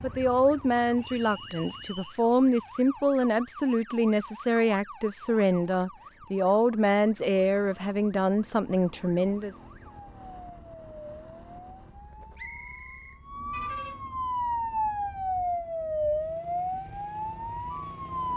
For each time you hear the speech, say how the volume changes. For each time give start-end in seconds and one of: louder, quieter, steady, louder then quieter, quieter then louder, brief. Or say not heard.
0.0-9.6 steady.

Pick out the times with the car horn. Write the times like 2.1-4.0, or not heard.
13.5-14.2.